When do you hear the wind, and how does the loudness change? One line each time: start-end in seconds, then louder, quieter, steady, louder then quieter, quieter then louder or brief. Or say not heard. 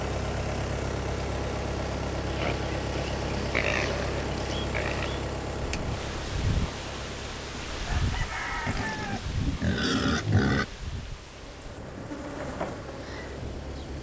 5.6-13.7 quieter.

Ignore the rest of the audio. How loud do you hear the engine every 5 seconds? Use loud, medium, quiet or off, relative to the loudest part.
loud, medium, quiet.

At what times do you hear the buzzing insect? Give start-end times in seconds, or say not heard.
11.4-13.9.